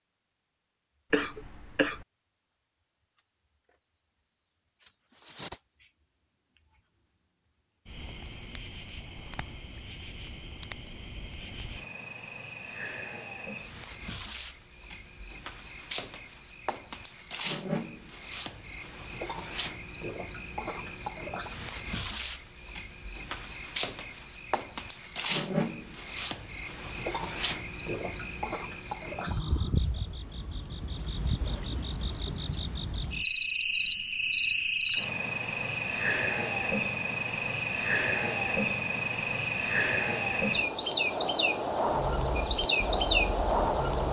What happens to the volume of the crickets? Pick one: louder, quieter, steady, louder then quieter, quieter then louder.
louder.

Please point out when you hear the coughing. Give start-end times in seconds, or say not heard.
1.1-2.0.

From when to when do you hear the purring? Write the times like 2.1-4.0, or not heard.
not heard.